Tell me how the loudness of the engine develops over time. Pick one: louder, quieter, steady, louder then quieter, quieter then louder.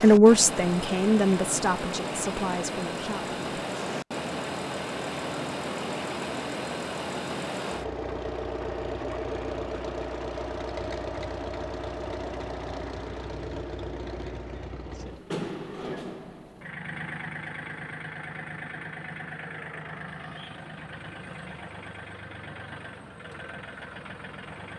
quieter.